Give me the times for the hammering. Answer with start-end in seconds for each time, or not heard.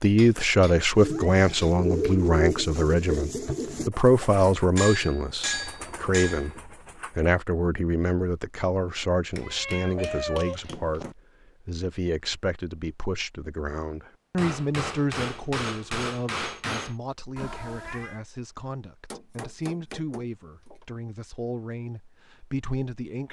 0.1-1.8, 4.8-6.5, 9.3-11.2, 14.3-16.9, 19.1-20.9.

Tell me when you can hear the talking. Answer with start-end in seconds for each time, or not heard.
0.0-6.5, 7.2-11.1, 11.7-23.2.